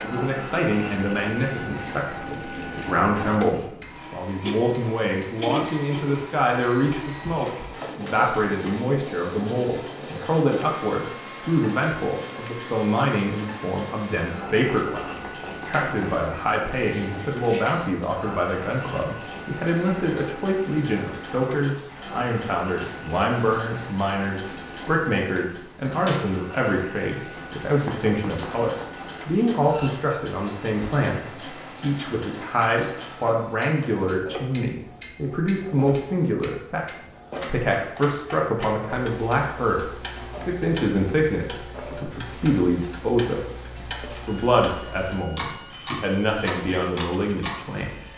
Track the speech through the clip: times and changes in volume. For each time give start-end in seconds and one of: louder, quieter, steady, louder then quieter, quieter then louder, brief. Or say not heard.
0.0-48.1 steady.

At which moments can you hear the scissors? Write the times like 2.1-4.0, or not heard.
not heard.